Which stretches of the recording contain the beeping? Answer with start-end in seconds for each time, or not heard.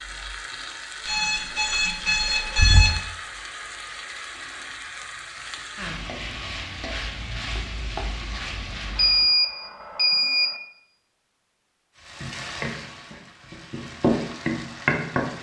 1.1-3.0, 8.9-10.6.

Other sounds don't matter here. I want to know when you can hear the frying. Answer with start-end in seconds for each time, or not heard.
0.0-9.3, 11.9-15.3.